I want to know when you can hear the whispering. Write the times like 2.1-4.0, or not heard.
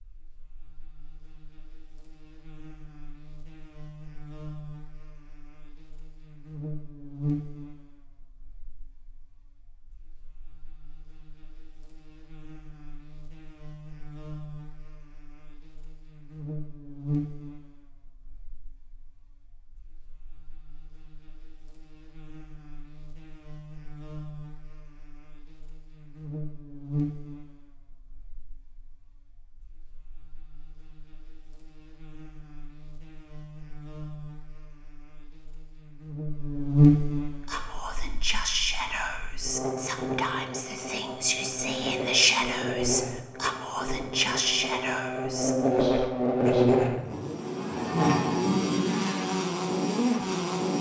37.5-46.8.